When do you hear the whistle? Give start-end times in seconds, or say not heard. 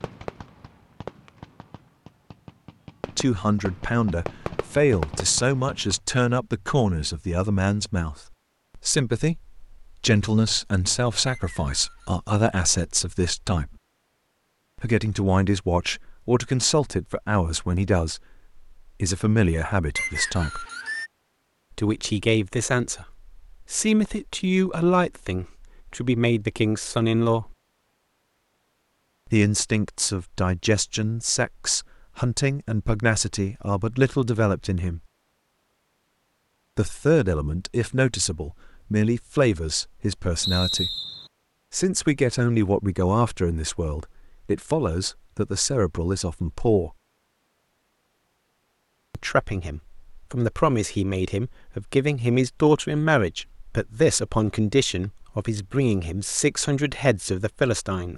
11.2-12.1, 19.9-21.1, 40.4-41.3.